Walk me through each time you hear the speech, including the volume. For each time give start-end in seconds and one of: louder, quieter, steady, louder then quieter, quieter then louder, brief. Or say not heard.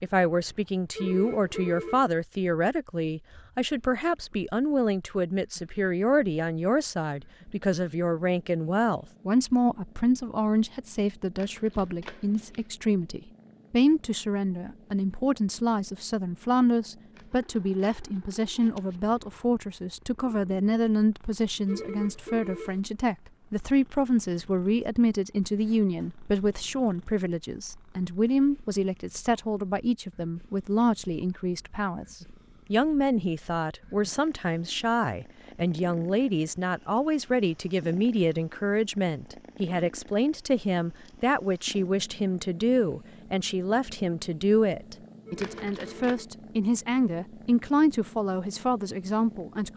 0.0-49.7 steady.